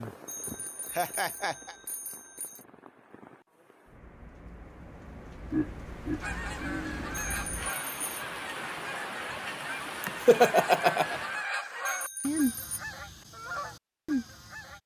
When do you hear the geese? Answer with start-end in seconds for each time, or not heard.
6.2-14.8.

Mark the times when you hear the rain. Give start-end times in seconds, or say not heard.
0.0-11.4.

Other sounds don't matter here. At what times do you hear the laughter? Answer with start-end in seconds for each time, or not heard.
0.9-1.8, 5.5-7.0, 10.0-11.2.